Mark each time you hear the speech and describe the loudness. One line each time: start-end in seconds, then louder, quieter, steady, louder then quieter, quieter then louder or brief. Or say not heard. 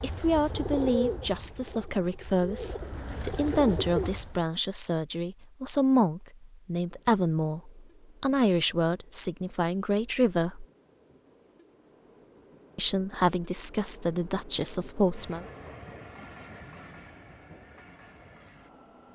0.0-10.7 steady
12.8-15.4 brief.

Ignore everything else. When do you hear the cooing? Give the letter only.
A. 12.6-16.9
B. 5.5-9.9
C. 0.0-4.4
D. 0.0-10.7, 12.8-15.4
C.